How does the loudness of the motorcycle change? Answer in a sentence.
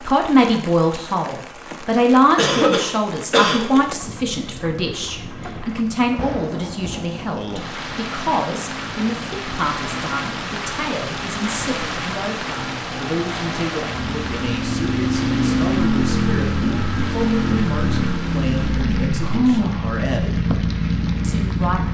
The loudness of the motorcycle goes up.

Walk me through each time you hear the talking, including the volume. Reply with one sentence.
The talking can be heard from 0.1 to 20.4 s, getting quieter; and briefly from 21.2 to 21.8 s.